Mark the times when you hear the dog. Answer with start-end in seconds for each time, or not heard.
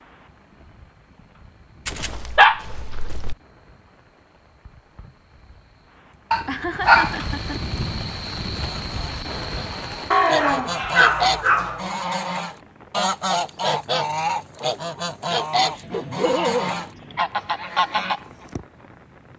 1.9-3.4, 6.3-7.6, 10.1-11.8, 15.6-17.2.